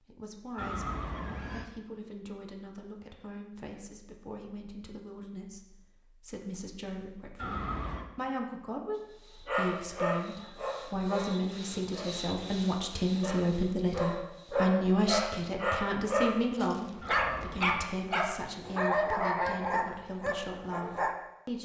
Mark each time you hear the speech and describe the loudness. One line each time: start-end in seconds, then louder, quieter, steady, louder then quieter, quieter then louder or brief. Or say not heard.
0.0-21.5 louder then quieter.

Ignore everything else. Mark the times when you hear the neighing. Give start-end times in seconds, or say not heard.
0.6-1.6, 7.3-8.1, 17.0-17.9.